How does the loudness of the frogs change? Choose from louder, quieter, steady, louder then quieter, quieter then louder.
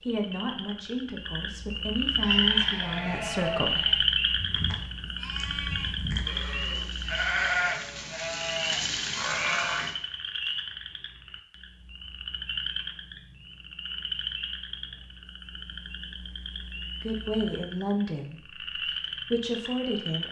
quieter.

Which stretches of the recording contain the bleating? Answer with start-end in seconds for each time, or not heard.
2.1-9.9.